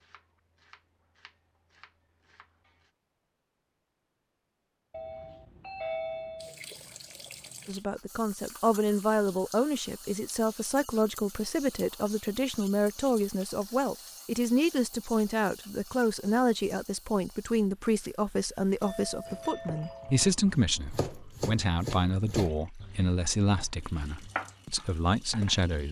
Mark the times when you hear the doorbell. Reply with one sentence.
You can hear the doorbell from 4.9 to 6.5 s and from 18.8 to 20.3 s.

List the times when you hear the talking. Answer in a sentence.
You can hear the talking from 7.7 to 25.8 s.